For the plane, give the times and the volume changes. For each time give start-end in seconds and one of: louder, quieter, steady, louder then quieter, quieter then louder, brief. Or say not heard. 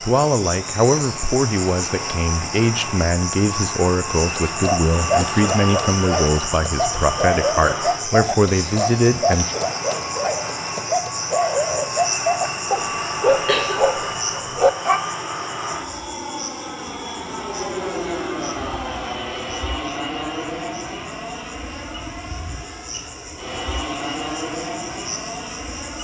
0.0-25.9 steady.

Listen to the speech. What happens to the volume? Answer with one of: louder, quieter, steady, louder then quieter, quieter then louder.
steady.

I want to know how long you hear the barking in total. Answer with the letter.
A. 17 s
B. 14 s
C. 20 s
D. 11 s
D.